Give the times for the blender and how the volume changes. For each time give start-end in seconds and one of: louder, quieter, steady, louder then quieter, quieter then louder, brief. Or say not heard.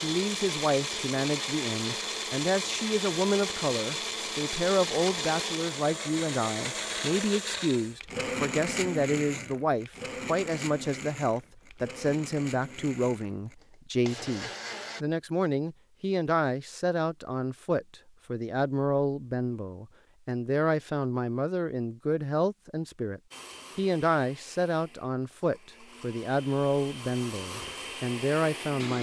0.0-15.1 quieter
23.3-28.9 quieter then louder.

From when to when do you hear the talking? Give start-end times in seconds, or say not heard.
0.0-28.9.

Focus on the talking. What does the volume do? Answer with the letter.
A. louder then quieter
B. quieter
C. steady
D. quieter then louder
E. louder
C.